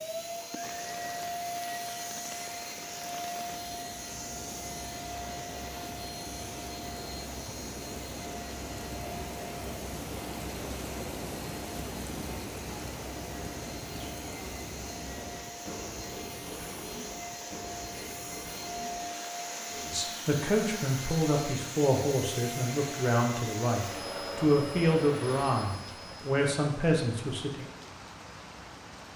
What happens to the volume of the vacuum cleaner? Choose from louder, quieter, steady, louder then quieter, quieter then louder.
quieter then louder.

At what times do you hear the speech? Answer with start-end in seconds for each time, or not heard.
19.7-27.6.